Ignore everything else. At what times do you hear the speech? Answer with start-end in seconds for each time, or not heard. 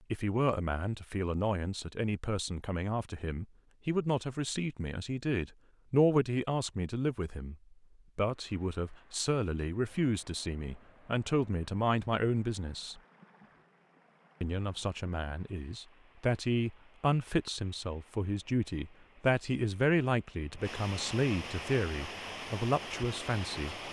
0.1-7.5, 8.2-13.0, 14.4-23.8.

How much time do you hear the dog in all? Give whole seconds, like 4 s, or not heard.
not heard.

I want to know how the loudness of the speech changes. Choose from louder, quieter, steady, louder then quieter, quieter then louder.
steady.